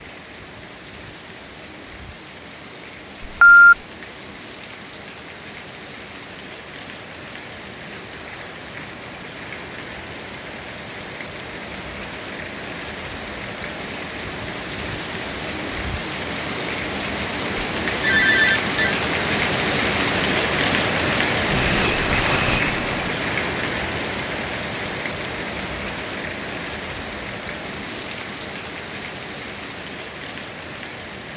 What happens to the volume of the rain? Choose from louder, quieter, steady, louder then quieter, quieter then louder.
louder then quieter.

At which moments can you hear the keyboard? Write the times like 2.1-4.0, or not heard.
not heard.